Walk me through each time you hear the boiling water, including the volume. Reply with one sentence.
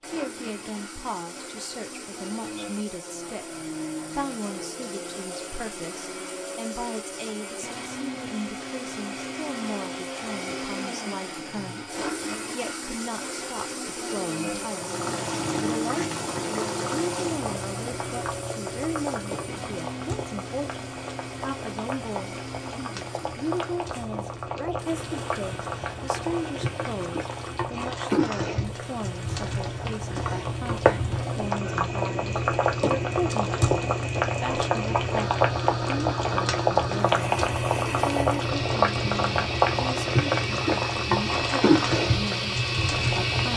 You can hear the boiling water from 14.7 to 43.5 s, getting louder.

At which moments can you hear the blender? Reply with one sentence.
The blender can be heard from 0.0 to 43.5 s.